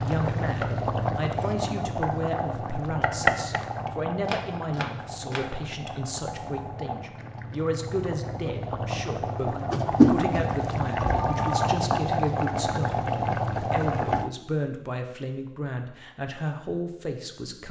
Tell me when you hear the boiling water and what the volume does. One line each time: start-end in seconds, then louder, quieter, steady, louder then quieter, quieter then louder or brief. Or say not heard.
0.0-14.3 quieter then louder.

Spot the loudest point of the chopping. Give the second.
3 s.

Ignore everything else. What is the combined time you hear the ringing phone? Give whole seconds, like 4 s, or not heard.
2 s.